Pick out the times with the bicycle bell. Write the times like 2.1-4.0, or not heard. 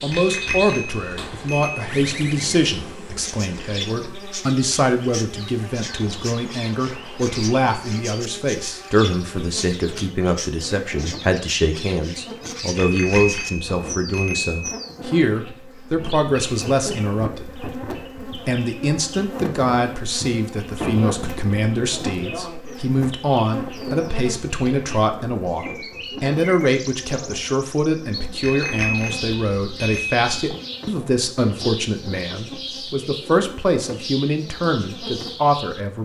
0.1-1.9, 12.8-14.6, 28.4-30.3.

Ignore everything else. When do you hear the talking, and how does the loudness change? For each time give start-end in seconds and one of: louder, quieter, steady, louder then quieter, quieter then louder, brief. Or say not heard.
0.0-36.0 steady.